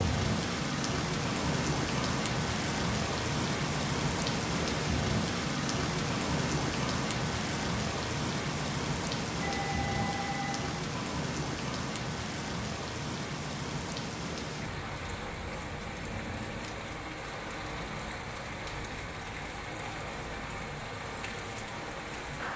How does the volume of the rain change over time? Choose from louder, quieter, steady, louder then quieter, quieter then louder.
quieter.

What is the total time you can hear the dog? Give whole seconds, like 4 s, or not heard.
not heard.